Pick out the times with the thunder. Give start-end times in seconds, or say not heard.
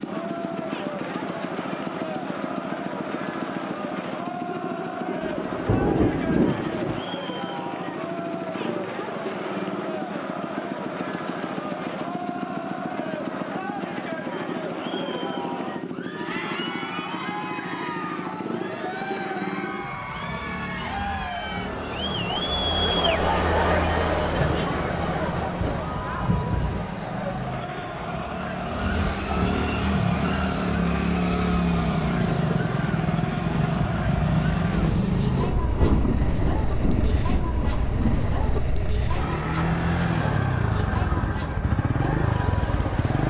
5.2-7.0, 24.4-26.9, 34.7-38.6.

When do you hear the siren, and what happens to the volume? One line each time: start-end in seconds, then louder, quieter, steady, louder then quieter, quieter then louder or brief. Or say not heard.
not heard.